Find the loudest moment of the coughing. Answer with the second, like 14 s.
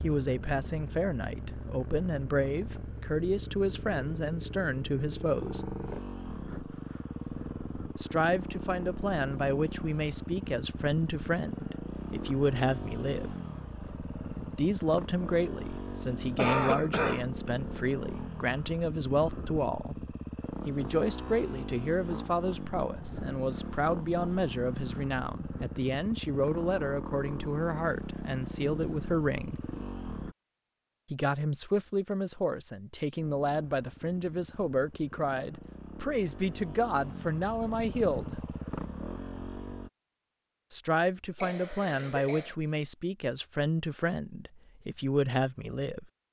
17 s.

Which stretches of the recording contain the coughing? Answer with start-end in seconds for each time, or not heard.
16.4-17.2, 41.4-42.5.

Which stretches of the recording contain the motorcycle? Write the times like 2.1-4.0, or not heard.
0.0-30.4, 33.1-39.9.